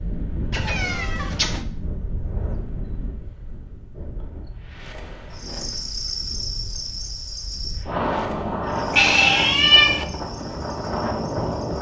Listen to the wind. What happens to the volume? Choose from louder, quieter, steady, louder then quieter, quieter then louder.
quieter then louder.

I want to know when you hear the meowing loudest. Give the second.
10 s.